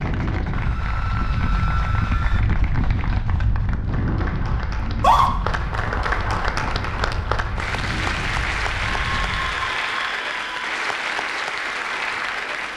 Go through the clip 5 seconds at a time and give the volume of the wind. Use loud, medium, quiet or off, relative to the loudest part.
loud, medium, off.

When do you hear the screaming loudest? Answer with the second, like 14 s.
5 s.